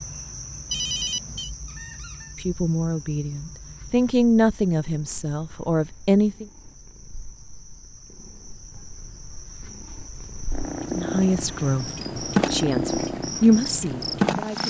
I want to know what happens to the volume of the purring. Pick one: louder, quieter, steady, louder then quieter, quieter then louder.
quieter then louder.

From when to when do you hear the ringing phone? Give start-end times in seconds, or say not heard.
0.7-1.5.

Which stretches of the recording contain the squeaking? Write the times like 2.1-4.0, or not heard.
1.6-2.4.